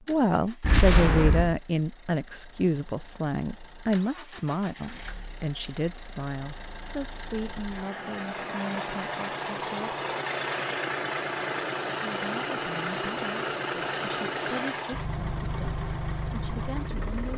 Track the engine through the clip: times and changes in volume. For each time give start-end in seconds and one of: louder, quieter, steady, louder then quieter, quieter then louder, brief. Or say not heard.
0.0-17.3 louder.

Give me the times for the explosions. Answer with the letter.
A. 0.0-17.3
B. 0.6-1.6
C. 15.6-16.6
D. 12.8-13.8
B.